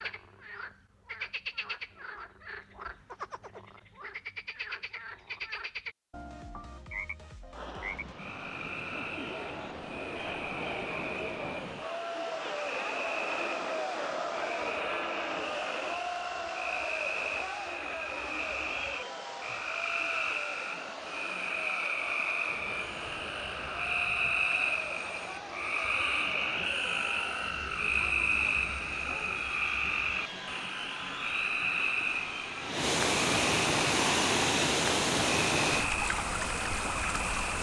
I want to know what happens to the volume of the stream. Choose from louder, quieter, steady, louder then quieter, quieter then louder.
louder.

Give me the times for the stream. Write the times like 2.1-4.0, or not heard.
7.5-37.5.